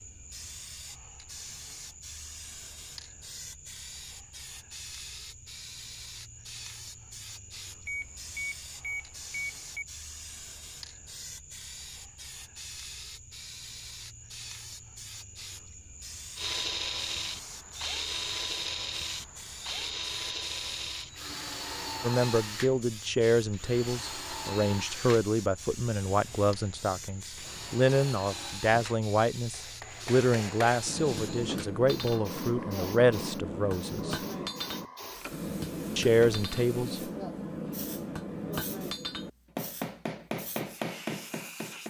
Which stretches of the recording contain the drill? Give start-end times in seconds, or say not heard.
16.4-31.9.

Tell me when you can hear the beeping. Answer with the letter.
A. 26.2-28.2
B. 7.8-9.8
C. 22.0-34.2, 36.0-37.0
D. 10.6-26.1
B.